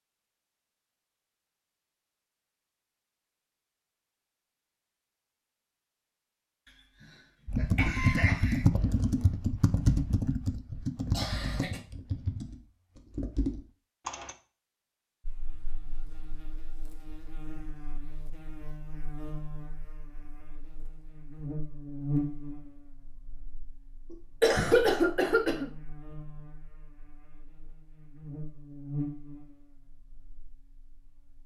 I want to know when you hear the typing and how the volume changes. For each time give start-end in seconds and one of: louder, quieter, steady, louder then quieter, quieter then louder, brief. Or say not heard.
7.5-14.3 quieter.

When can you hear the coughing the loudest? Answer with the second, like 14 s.
25 s.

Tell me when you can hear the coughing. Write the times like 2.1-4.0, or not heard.
7.0-8.7, 11.1-11.8, 24.1-25.7.